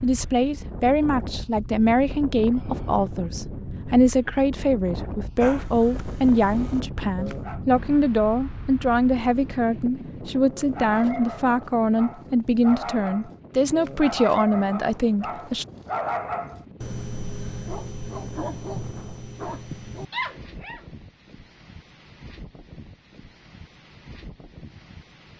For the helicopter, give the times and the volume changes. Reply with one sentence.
The helicopter can't be heard in this clip.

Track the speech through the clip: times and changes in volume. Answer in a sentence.
You can hear the speech from 0.0 to 15.7 s, at a steady volume.